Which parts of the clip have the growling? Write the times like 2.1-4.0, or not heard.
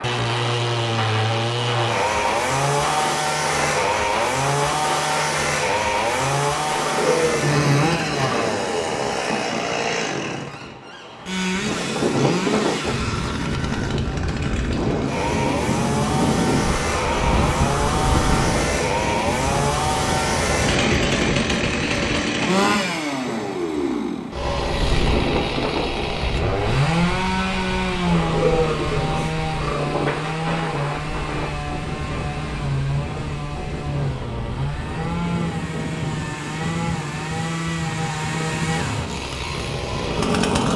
6.7-8.5, 28.1-29.9.